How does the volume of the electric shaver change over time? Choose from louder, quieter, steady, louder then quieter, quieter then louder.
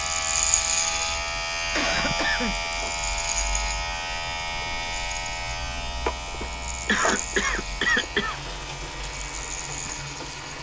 quieter.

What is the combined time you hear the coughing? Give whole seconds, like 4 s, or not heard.
3 s.